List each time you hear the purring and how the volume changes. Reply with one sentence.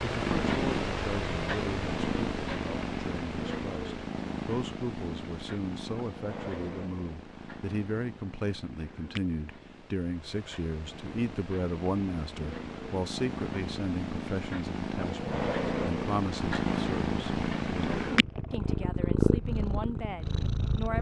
The purring can be heard from 0.0 to 20.9 s, getting quieter then louder.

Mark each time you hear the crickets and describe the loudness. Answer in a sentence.
You can't hear the crickets here.